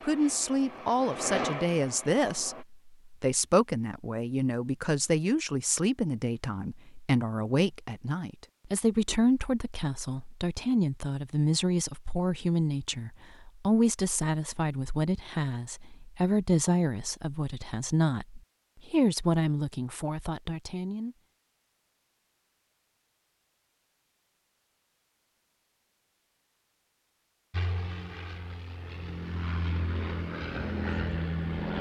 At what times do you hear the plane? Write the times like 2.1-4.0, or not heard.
0.0-2.6, 27.5-31.7.